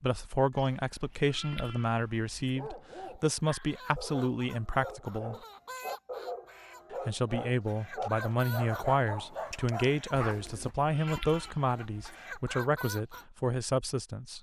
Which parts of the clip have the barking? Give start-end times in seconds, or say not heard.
2.5-10.8.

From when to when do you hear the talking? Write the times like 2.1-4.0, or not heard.
0.0-5.4, 6.9-14.3.